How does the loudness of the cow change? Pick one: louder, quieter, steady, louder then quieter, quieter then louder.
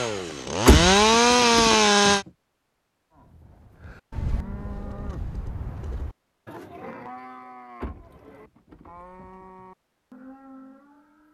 quieter.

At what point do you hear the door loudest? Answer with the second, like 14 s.
1 s.